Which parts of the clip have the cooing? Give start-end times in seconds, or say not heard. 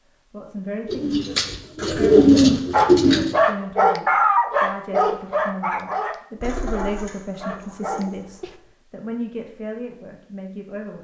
0.8-3.3, 6.4-8.2.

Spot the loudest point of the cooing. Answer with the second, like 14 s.
2 s.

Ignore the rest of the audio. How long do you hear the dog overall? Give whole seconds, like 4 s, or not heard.
6 s.